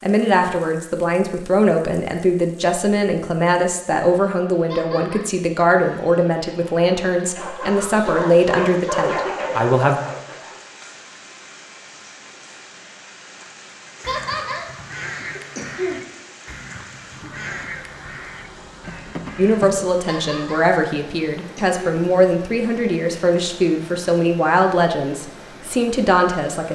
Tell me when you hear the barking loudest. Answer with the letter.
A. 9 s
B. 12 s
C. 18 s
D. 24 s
A.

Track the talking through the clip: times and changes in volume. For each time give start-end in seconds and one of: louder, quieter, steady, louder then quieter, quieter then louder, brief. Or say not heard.
0.0-10.0 steady
19.4-26.7 steady.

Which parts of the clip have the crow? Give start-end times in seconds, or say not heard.
14.0-19.9.